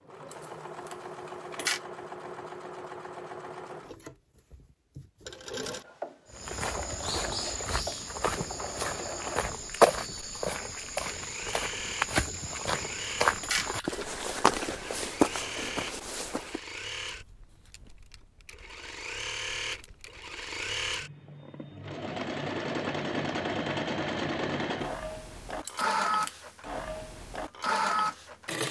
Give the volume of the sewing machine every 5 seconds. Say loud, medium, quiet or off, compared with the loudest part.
medium, medium, medium, medium, loud, loud.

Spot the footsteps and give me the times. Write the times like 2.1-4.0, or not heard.
6.3-16.6.